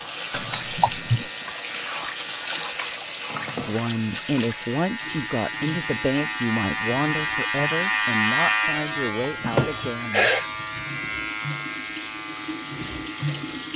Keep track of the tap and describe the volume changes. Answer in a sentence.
The volume of the tap goes down, then up.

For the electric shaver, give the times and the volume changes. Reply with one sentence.
The electric shaver can be heard from 0.0 to 13.7 s, getting louder then quieter.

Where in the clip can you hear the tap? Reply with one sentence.
The tap can be heard from 0.0 to 13.7 s.